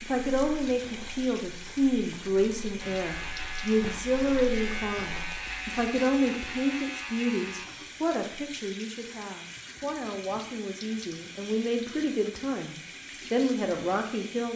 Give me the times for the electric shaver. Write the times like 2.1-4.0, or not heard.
2.8-7.7.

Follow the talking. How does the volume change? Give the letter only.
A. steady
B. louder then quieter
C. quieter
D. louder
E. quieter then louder
E.